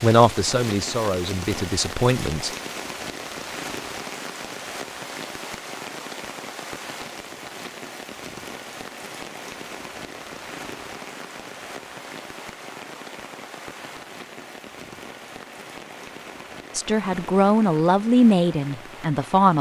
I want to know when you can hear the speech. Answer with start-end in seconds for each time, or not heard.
0.0-2.5, 16.8-19.5.